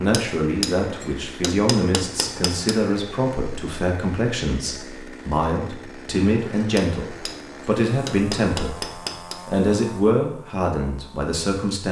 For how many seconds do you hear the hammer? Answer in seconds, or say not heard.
5 s.